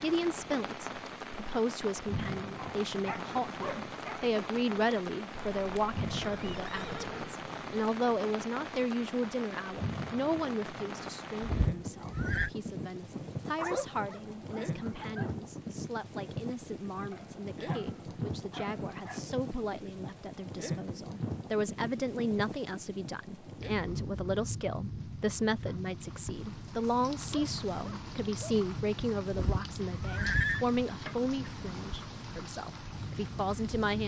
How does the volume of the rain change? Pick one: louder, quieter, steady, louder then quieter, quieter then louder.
steady.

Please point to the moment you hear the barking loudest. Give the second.
14 s.